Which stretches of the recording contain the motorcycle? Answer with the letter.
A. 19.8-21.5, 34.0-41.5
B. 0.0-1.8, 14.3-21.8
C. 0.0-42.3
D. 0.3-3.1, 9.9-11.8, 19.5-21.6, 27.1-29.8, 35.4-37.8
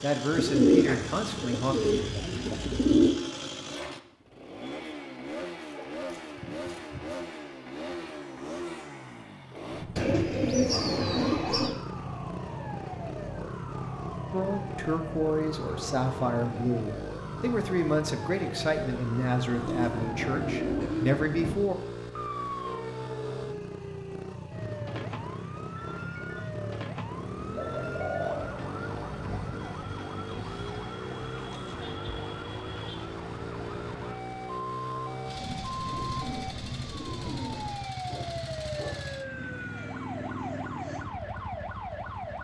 C.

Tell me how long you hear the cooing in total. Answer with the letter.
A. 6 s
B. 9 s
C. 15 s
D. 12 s
D.